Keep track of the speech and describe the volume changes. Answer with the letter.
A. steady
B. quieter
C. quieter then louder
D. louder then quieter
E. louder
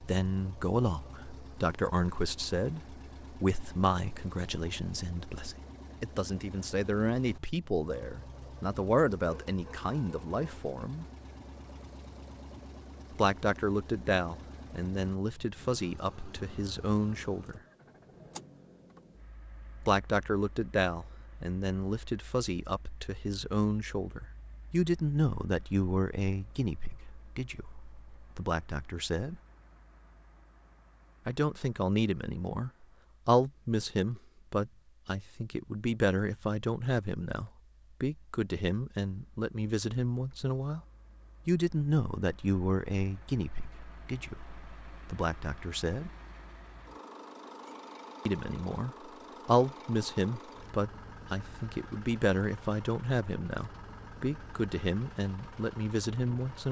A.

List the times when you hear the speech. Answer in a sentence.
You can hear the speech from 0.0 to 11.1 s, from 13.2 to 17.6 s, from 19.8 to 29.4 s, from 31.2 to 40.8 s, from 41.5 to 46.1 s and from 48.2 to 56.6 s.